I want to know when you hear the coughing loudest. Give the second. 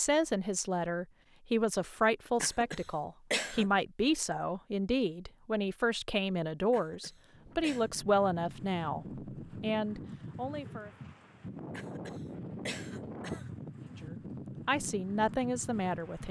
3 s.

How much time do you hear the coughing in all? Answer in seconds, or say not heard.
4 s.